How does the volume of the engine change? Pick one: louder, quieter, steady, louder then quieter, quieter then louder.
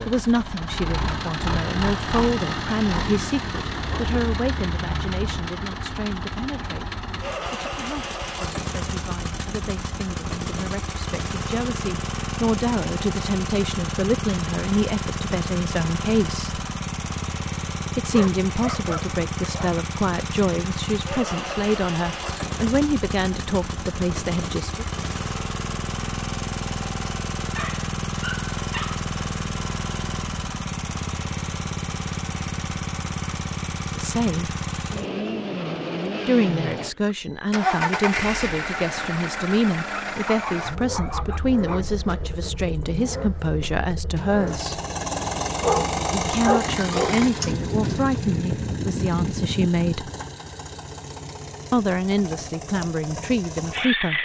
steady.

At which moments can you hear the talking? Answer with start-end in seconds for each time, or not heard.
0.1-16.6, 17.9-24.9, 34.0-34.5, 36.2-44.8, 46.1-50.1, 51.7-54.2.